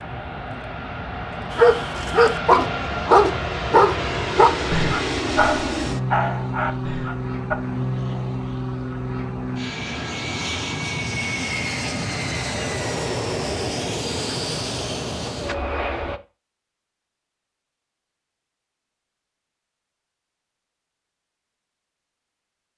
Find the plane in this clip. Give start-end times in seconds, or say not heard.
0.0-16.2.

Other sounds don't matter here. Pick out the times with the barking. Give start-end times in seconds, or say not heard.
1.5-7.5.